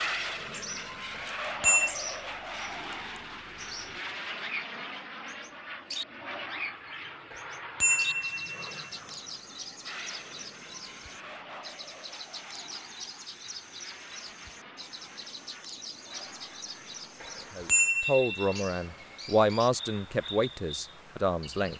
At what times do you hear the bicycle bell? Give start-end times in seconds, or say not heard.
1.1-1.9, 7.3-8.7, 17.2-18.6.